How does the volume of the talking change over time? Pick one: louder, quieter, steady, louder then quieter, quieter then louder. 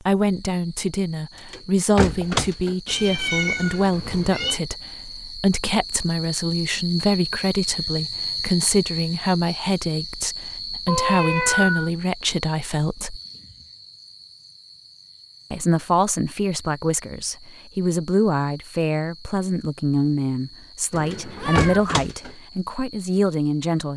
steady.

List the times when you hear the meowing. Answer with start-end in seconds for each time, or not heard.
2.9-4.6, 10.8-11.9, 20.9-21.8.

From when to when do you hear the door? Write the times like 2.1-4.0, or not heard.
1.5-2.8, 21.1-22.3.